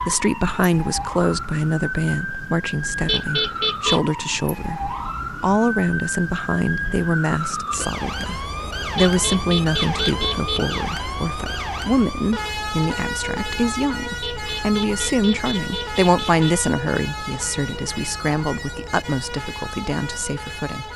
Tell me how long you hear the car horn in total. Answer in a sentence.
The car horn can be heard for 5 seconds in total.